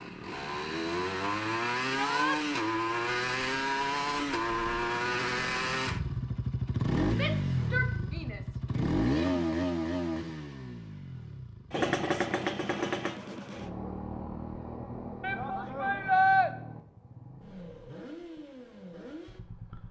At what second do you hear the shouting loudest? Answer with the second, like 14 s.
16 s.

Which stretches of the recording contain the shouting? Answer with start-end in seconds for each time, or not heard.
1.9-2.4, 7.1-9.4, 15.2-16.5.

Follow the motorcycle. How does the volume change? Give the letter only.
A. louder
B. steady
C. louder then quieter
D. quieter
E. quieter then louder
D.